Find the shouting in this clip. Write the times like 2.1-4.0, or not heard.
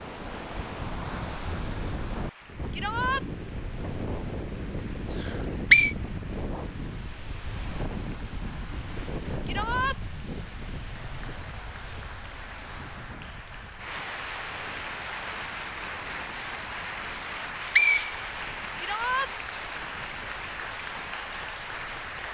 2.7-3.2, 9.4-10.0, 18.8-19.3.